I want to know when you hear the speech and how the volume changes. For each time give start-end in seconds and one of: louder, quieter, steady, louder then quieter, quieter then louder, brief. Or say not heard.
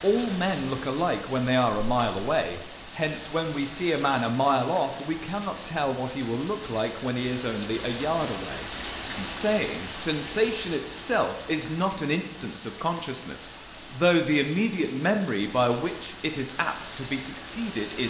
0.0-18.0 steady.